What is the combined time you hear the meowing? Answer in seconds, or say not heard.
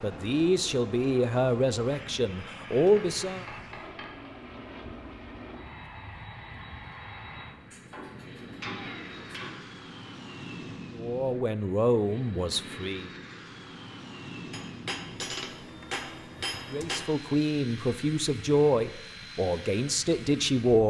2 s.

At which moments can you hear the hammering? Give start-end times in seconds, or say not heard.
2.8-4.3, 7.9-9.7, 14.5-17.0.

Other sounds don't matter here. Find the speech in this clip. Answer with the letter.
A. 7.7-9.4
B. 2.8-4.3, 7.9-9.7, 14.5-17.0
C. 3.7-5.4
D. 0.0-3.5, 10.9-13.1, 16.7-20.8
D.